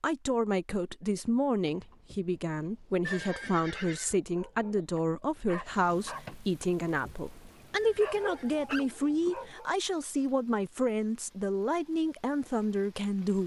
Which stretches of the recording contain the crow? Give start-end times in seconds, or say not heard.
not heard.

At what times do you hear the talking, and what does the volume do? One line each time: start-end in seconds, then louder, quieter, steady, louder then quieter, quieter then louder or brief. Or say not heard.
0.0-13.4 steady.